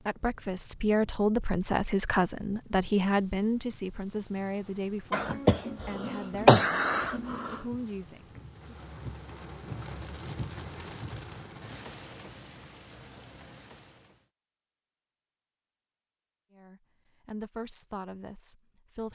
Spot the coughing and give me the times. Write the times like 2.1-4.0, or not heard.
5.1-7.6.